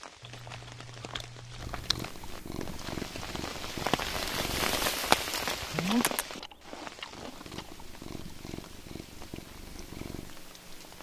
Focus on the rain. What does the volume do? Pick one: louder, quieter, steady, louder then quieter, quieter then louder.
louder then quieter.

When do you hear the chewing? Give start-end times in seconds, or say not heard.
0.2-2.0, 5.7-7.8.